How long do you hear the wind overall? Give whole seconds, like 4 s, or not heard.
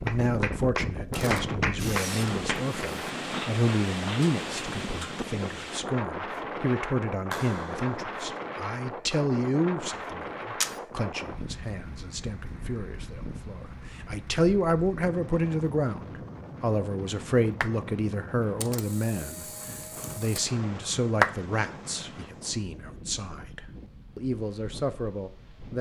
26 s.